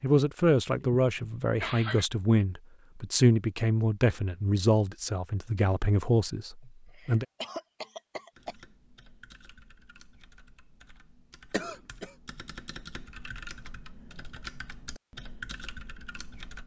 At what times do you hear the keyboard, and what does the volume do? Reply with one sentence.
You can hear the keyboard from 8.3 to 16.6 s, getting louder.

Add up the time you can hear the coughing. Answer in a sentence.
The coughing can be heard for 4 seconds in total.